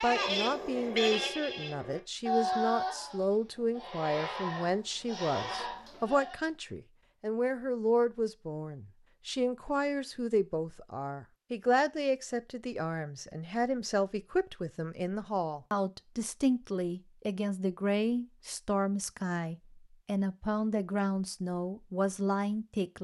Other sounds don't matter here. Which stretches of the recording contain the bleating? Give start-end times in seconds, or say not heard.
0.0-6.5.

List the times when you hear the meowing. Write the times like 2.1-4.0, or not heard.
not heard.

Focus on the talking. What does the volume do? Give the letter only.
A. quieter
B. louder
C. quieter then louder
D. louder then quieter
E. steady
E.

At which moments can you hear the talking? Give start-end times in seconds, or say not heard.
0.0-22.9.